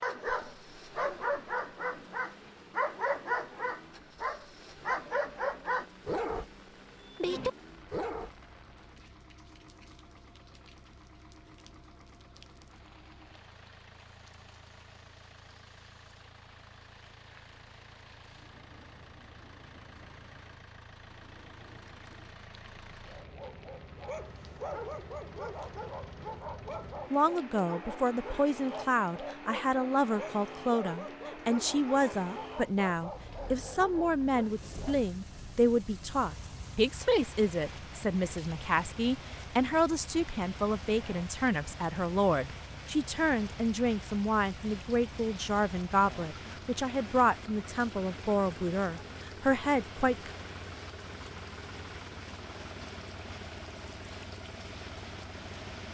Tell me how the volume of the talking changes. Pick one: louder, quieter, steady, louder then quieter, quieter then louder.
steady.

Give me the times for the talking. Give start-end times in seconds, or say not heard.
27.1-50.3.